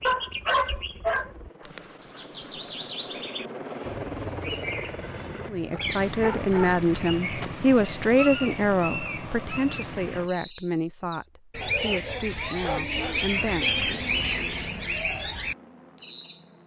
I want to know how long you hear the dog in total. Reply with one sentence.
The dog can be heard for 5 seconds in total.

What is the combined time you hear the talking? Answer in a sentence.
The talking can be heard for 8 seconds in total.